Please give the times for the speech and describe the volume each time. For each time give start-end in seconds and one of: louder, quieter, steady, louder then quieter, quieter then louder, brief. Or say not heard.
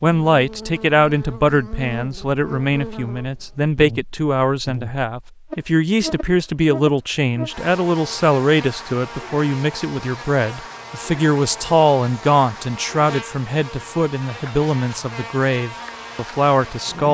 0.0-17.0 steady.